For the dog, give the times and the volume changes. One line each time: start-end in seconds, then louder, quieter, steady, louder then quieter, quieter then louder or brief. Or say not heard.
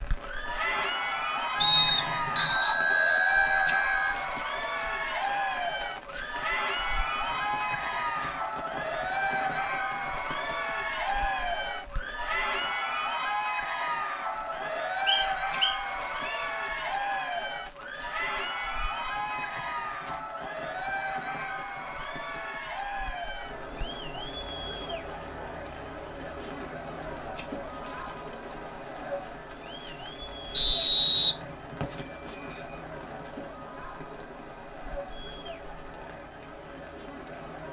not heard.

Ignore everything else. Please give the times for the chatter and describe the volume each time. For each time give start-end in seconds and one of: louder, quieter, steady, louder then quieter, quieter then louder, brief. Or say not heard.
0.1-37.6 quieter.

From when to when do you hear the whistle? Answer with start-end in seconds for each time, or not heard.
1.6-2.5, 15.1-16.4, 30.5-32.0.